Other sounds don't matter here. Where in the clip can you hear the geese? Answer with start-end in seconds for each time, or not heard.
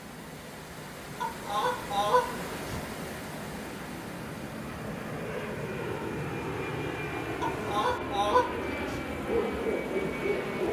1.2-2.8, 7.4-9.0.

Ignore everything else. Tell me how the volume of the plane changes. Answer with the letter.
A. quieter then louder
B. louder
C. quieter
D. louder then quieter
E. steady
B.